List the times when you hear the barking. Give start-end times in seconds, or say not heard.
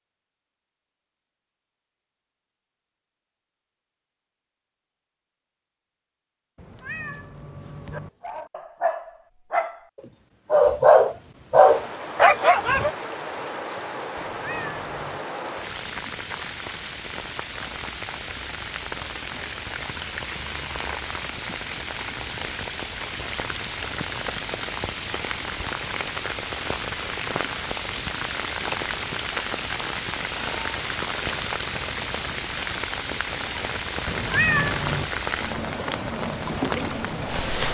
7.9-12.9.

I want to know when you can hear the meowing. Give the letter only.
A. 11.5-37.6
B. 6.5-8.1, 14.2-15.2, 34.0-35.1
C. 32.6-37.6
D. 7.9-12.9
B.